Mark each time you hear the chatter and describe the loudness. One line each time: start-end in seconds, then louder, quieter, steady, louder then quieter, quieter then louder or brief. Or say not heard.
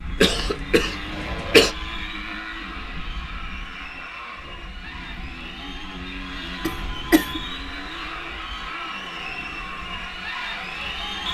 0.0-11.2 louder.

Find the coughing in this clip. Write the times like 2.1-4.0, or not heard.
0.1-1.8, 6.6-7.4.